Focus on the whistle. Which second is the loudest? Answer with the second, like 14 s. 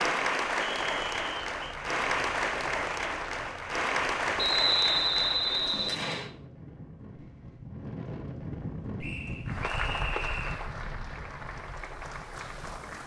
5 s.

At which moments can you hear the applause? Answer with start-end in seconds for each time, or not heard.
0.0-5.8, 9.4-13.0.